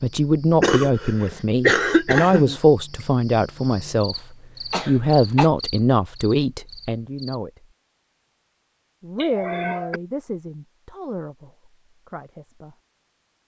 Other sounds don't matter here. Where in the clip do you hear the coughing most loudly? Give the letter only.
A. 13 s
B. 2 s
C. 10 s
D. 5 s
B.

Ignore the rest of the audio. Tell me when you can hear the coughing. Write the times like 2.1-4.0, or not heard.
0.6-2.6, 4.7-5.5, 9.2-10.0.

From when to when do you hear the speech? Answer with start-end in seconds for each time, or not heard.
0.0-4.2, 4.8-7.7, 9.0-12.8.